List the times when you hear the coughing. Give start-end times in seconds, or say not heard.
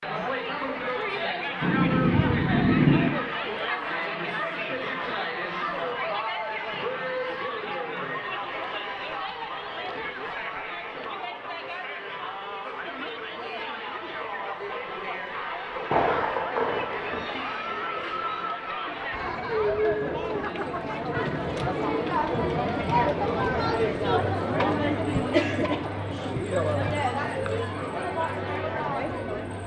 not heard.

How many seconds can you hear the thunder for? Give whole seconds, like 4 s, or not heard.
4 s.